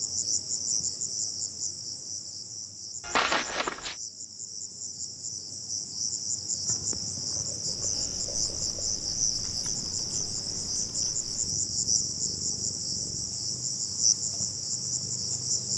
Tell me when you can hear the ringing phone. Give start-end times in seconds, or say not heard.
3.0-4.0.